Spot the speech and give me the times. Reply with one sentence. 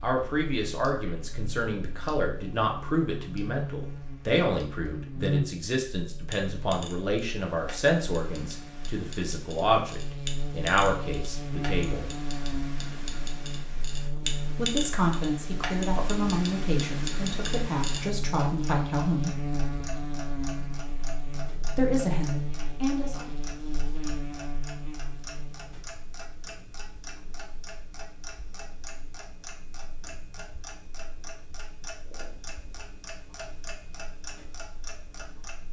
The speech can be heard from 0.0 to 12.2 s, from 14.6 to 19.4 s and from 21.8 to 23.3 s.